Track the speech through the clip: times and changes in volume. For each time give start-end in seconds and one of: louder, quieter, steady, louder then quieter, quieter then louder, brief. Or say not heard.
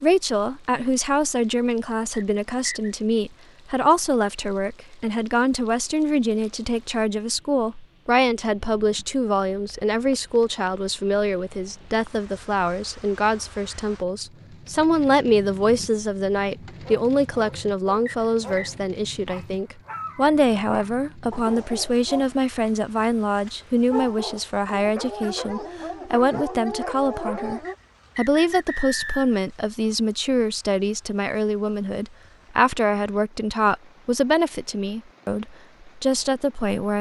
0.0-36.9 steady.